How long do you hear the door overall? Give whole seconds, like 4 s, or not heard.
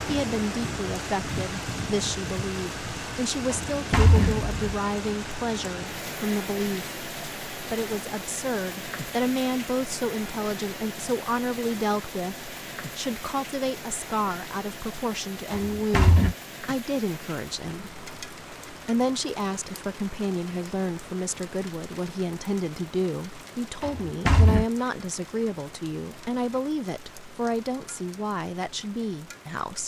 3 s.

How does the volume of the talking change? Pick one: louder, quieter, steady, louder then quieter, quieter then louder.
steady.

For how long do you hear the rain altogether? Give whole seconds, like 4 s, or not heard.
30 s.